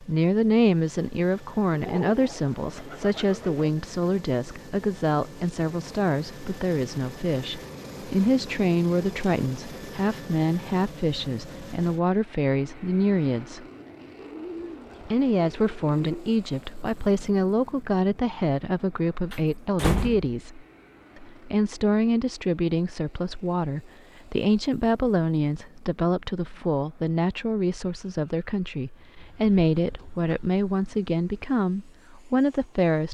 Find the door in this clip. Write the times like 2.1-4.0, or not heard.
19.3-20.4.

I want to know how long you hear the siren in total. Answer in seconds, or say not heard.
not heard.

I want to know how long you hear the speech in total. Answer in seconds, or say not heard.
32 s.